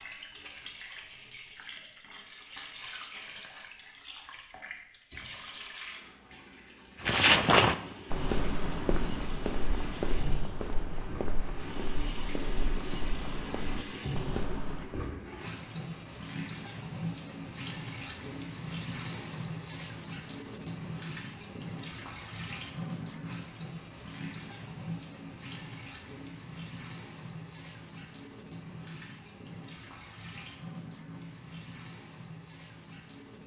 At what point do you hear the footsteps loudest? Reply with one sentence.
The volume of the footsteps peaks at 7 seconds.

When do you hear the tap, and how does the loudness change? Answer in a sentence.
You can hear the tap from 0.0 to 33.4 s, getting louder then quieter.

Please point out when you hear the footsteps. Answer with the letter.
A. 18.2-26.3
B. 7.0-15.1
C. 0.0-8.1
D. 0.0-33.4
B.